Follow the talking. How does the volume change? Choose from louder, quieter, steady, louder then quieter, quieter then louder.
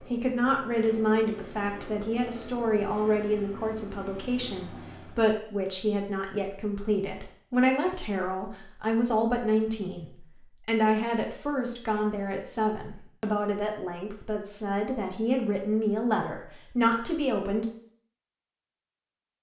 steady.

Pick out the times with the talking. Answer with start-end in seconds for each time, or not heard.
0.0-17.6.